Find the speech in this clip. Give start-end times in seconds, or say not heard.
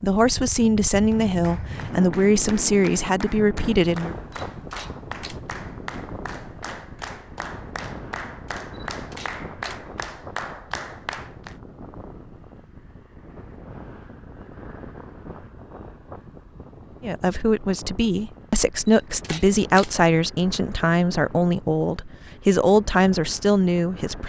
0.0-4.2, 17.0-24.2.